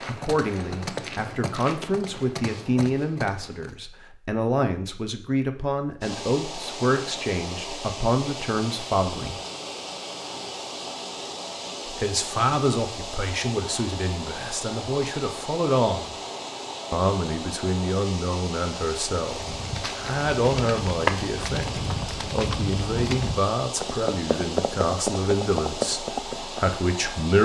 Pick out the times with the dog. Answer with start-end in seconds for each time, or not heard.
not heard.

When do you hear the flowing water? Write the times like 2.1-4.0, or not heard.
6.0-27.3.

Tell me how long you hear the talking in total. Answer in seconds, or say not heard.
24 s.